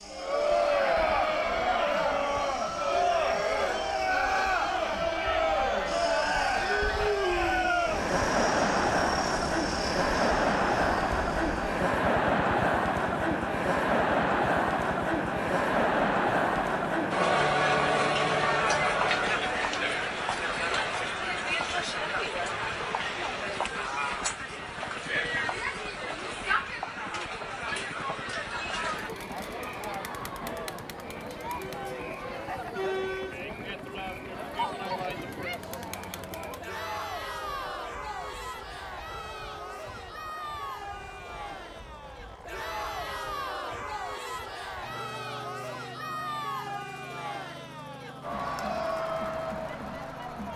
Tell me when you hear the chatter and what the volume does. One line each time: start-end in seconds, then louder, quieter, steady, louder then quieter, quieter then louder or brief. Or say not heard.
0.0-50.5 quieter.